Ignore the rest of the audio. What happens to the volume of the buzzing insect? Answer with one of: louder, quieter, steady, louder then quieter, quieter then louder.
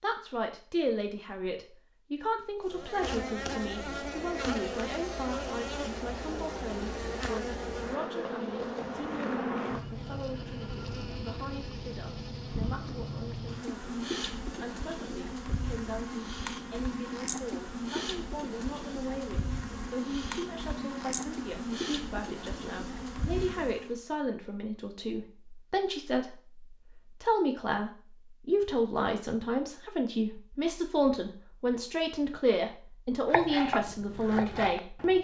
steady.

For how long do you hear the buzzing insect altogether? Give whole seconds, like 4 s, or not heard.
21 s.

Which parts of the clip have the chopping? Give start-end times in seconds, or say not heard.
33.2-35.1.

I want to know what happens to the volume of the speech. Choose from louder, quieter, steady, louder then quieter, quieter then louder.
quieter then louder.